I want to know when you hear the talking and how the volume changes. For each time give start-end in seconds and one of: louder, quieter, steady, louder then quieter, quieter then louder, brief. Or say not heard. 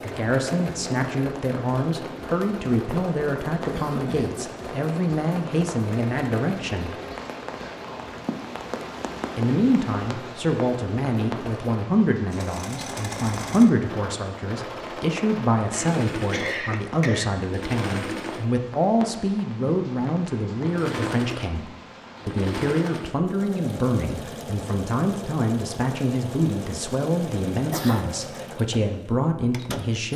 0.0-7.0 steady
9.3-30.1 steady.